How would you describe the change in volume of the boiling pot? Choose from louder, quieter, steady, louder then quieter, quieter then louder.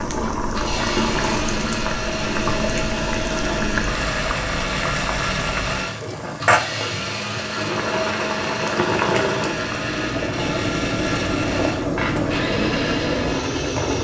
steady.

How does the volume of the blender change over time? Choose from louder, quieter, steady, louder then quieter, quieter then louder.
steady.